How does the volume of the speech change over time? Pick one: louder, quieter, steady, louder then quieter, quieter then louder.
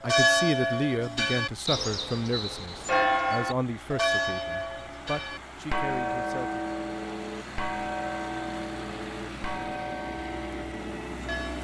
quieter.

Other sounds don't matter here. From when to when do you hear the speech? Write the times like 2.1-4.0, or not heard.
0.0-6.7.